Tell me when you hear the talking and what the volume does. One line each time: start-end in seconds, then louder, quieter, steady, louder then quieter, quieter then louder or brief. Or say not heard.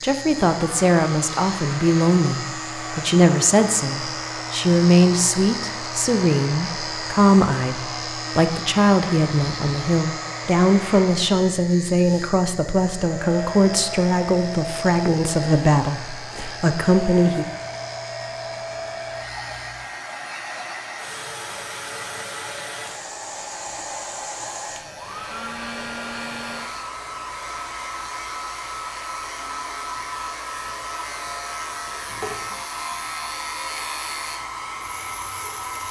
0.0-17.4 steady.